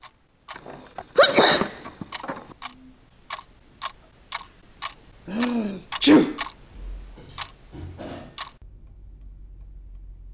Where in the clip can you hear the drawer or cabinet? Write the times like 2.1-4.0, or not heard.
not heard.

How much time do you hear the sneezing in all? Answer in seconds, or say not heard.
3 s.